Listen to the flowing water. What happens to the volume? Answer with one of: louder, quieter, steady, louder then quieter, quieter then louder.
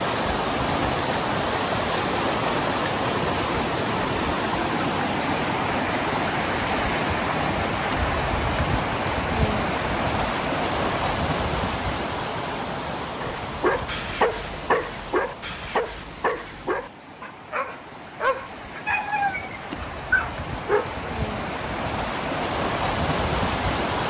quieter then louder.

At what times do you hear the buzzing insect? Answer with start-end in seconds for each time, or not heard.
not heard.